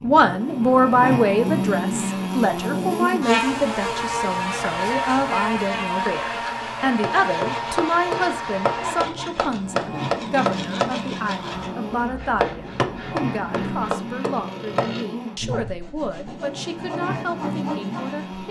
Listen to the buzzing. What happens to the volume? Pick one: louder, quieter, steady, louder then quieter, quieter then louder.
quieter.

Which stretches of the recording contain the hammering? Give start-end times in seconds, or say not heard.
7.0-14.9.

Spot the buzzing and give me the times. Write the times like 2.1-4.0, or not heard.
0.0-18.4.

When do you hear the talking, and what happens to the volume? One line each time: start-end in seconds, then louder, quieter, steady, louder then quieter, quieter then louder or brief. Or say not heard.
0.0-18.4 quieter.